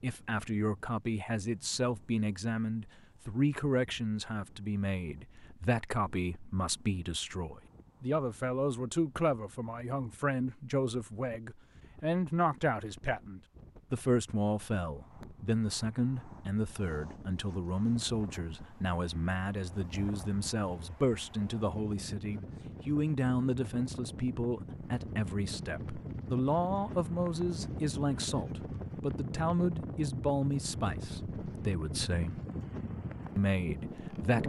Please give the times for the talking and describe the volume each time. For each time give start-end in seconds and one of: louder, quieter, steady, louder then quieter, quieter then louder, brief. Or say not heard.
0.0-32.4 steady
33.4-34.4 brief.